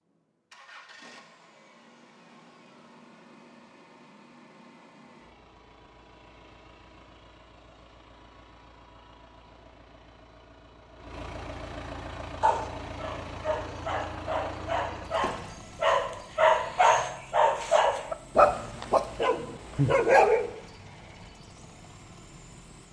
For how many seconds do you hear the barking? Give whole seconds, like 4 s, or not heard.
8 s.